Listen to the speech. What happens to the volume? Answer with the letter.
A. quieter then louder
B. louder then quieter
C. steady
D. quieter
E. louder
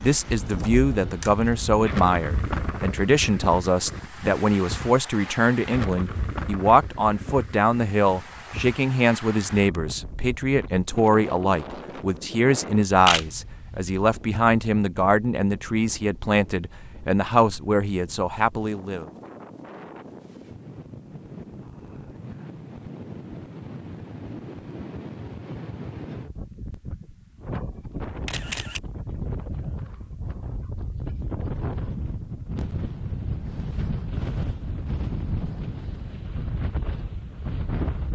C.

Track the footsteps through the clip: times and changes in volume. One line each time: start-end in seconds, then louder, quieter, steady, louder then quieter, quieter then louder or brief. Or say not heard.
not heard.